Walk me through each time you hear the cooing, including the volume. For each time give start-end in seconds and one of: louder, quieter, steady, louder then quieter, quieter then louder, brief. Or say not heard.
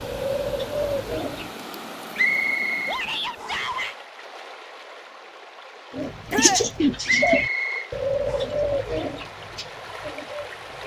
0.0-1.5 brief
5.9-10.8 quieter.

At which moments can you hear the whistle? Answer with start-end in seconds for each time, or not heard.
2.1-3.8, 7.0-8.4.